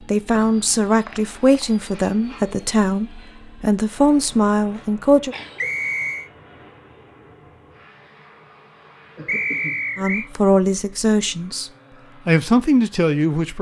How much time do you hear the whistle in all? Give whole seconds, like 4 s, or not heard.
3 s.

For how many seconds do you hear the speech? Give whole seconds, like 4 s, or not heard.
9 s.